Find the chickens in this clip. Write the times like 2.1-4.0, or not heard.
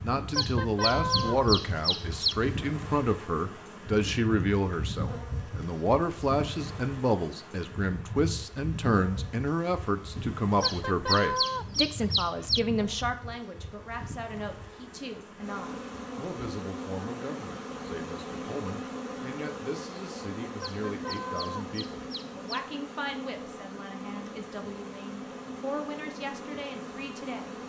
0.3-2.4, 10.6-12.6, 20.6-22.6.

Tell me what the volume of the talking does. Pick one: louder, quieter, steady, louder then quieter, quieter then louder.
quieter.